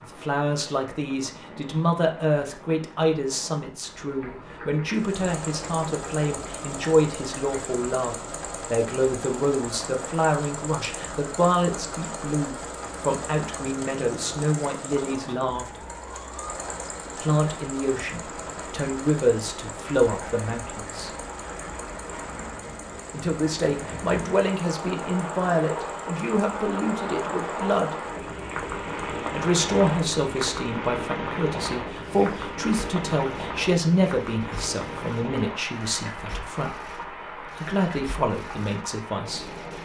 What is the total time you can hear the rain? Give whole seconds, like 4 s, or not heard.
40 s.